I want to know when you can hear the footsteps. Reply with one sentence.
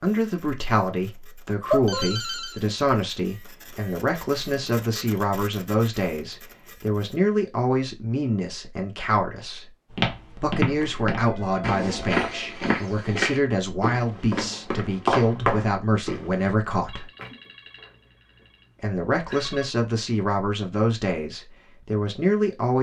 The footsteps can be heard from 9.9 to 16.5 s.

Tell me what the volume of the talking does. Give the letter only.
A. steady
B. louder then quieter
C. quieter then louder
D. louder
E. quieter
A.